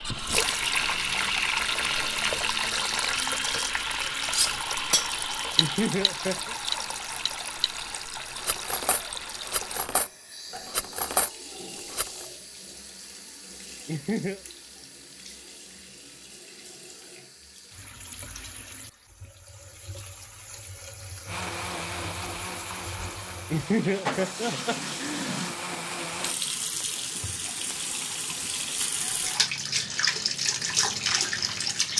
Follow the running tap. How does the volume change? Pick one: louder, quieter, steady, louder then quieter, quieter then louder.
quieter then louder.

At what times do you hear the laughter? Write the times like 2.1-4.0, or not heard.
5.5-6.5, 13.8-14.4, 23.5-25.4.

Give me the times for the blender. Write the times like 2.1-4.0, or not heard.
0.0-5.7, 21.2-26.4.